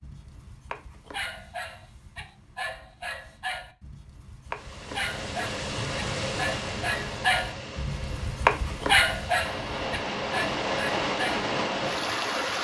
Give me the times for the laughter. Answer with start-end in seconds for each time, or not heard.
not heard.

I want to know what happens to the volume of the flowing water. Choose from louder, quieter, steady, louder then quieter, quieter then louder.
quieter then louder.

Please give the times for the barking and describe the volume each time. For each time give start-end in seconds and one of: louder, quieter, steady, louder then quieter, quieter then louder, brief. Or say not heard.
0.0-11.5 louder.